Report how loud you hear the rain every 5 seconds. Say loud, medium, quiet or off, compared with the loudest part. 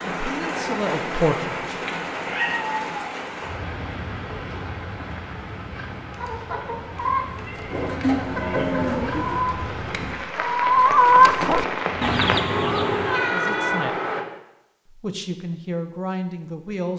loud, medium, loud, off.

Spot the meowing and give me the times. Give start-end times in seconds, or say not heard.
1.9-3.0, 7.5-8.8, 12.4-14.2.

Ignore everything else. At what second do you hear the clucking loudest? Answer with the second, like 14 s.
11 s.